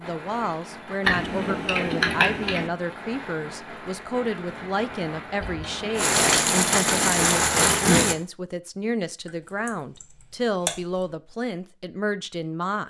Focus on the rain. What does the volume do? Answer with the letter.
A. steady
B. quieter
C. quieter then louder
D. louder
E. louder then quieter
D.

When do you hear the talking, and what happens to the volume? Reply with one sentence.
The talking can be heard from 0.0 to 12.8 s, at a steady volume.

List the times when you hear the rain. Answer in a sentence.
The rain can be heard from 0.0 to 8.2 s.